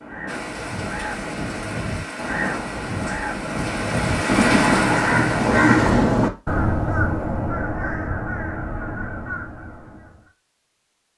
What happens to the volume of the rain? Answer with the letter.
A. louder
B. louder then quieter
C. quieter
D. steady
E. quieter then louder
A.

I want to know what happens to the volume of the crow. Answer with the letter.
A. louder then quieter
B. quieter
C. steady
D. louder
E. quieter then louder
A.